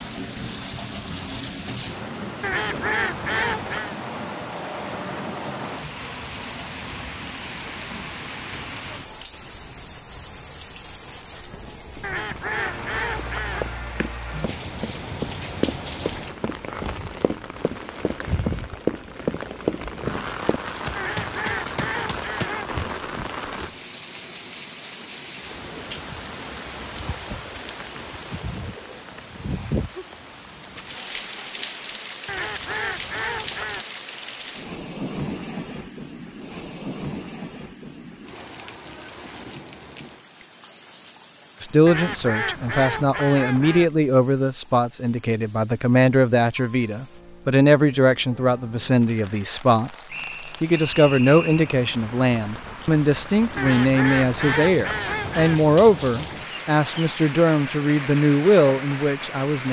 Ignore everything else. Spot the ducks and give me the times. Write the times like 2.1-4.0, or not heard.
2.4-4.0, 12.0-13.7, 20.9-22.7, 32.2-33.9, 41.9-43.9, 53.5-55.6.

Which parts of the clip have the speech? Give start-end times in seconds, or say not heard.
41.6-59.6.